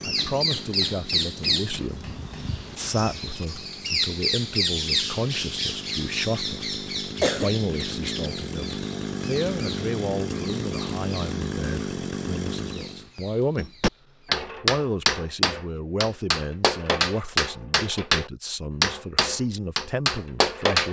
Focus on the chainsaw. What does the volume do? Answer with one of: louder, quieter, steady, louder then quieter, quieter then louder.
louder.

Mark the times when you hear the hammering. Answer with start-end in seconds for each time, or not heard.
0.0-2.5, 13.6-20.8.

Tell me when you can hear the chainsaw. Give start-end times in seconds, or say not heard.
0.0-13.1.